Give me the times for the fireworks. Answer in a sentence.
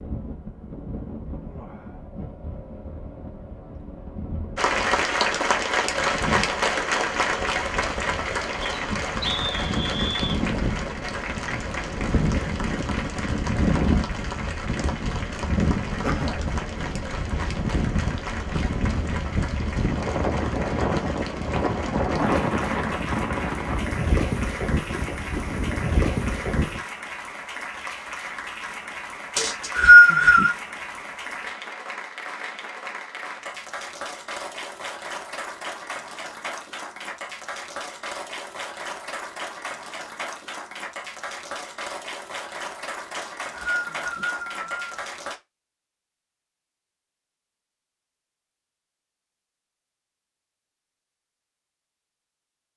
You can't hear the fireworks here.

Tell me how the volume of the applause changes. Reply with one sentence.
The volume of the applause goes down.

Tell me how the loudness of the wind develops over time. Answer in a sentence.
The loudness of the wind goes up.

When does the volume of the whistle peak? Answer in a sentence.
The volume of the whistle peaks at 30 seconds.